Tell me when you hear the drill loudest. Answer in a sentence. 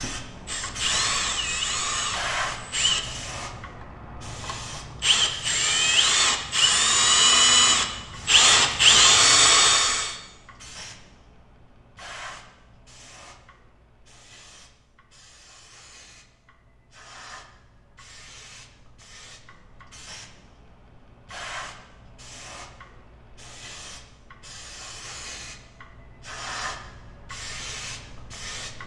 The loudest moment of the drill is at 9 seconds.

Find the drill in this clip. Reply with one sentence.
You can hear the drill from 0.3 to 10.2 s.